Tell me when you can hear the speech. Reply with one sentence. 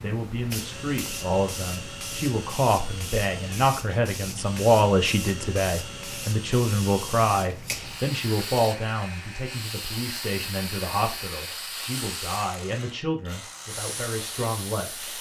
You can hear the speech from 0.0 to 15.1 s.